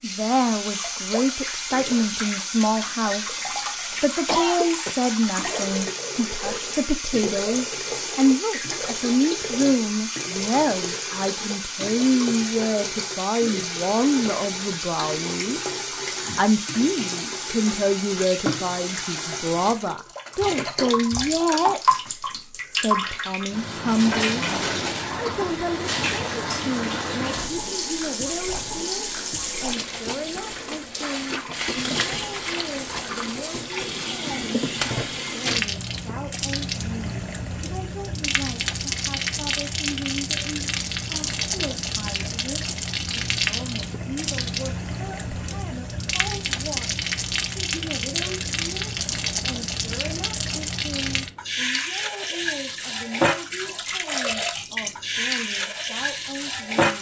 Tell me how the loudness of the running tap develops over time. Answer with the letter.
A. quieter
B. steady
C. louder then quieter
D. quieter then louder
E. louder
B.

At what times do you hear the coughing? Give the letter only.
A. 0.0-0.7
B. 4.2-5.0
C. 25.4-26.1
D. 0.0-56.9
B.